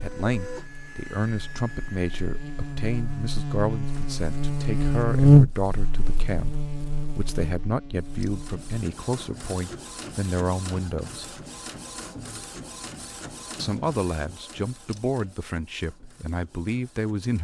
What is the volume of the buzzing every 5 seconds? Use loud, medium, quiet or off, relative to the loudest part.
medium, loud, off, off.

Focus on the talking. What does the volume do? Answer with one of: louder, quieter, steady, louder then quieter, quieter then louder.
steady.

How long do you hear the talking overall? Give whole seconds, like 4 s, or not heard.
15 s.